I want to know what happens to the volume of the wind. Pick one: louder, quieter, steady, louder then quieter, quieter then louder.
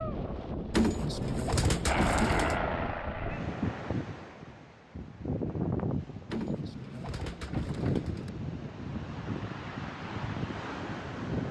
steady.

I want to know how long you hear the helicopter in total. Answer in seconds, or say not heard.
2 s.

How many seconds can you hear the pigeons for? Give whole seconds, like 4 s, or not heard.
4 s.